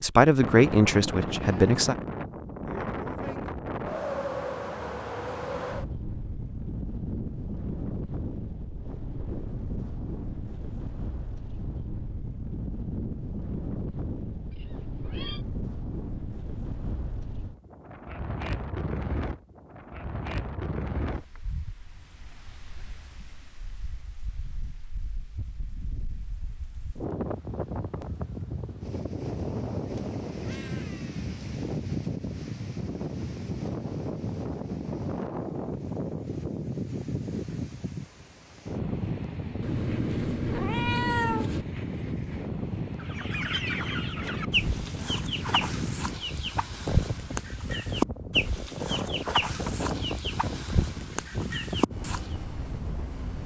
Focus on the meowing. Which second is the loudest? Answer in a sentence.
The loudest moment of the meowing is at 41 seconds.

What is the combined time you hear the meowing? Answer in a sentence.
You can hear the meowing for 4 seconds altogether.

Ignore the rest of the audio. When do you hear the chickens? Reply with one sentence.
You can hear the chickens from 43.0 to 52.2 s.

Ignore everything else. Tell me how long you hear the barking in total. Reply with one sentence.
You can't hear the barking here.